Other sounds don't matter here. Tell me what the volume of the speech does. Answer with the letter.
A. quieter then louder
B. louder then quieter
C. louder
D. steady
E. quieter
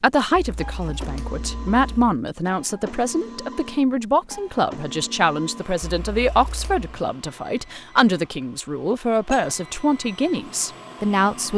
D.